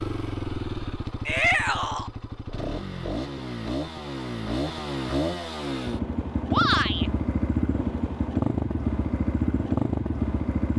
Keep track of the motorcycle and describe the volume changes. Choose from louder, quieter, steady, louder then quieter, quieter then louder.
louder.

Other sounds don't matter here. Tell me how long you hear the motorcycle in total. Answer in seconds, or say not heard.
11 s.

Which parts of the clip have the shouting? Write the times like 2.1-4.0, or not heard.
1.2-2.1, 6.5-7.1.